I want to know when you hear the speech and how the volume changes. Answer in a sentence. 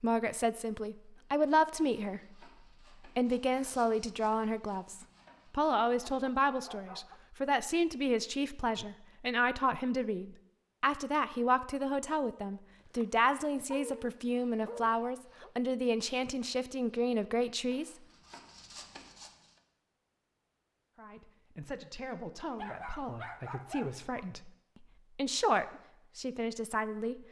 The speech can be heard briefly from 0.0 to 2.5 s; from 3.0 to 17.9 s, at a steady volume; and from 20.9 to 27.2 s, getting louder then quieter.